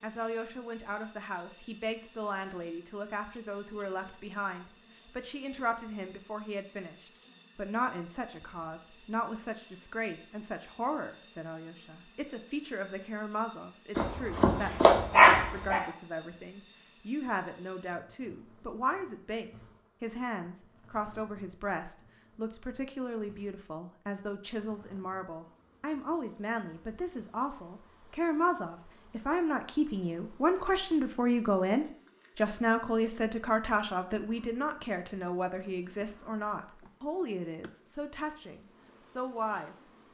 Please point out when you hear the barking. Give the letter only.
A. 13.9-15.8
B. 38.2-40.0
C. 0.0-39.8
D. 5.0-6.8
A.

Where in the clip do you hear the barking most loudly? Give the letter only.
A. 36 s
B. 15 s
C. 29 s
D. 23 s
B.